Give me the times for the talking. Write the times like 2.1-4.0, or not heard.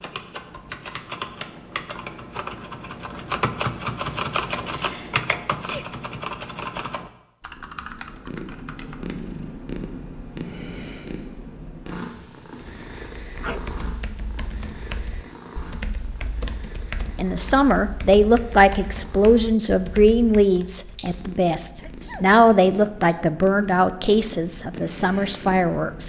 17.1-26.0.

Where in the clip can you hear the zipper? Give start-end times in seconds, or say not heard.
not heard.